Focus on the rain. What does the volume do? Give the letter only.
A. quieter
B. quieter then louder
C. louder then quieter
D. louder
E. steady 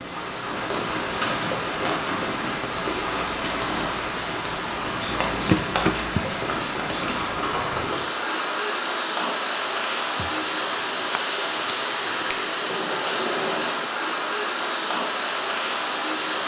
E.